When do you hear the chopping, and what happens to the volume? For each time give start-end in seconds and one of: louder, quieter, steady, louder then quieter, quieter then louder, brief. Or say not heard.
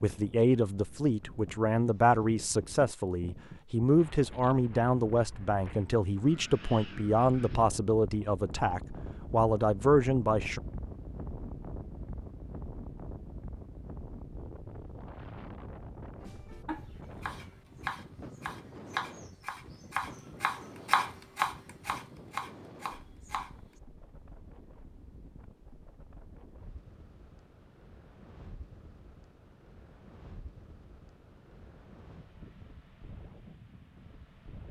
16.2-23.6 louder then quieter.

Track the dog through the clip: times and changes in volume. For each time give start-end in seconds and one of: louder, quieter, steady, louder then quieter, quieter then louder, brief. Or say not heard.
not heard.